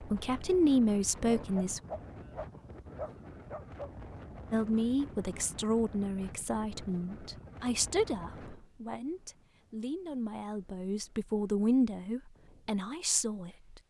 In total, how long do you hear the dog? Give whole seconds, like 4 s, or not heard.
3 s.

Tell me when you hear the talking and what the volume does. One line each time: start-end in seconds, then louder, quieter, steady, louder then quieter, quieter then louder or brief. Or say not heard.
0.0-1.8 brief
4.5-13.8 quieter then louder.